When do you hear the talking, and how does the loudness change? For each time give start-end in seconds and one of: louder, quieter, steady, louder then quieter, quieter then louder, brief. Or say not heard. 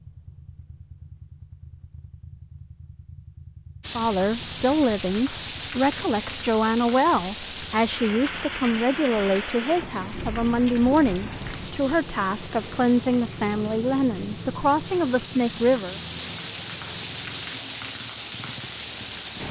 4.0-15.9 steady.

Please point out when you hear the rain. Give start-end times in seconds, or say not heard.
3.8-19.4.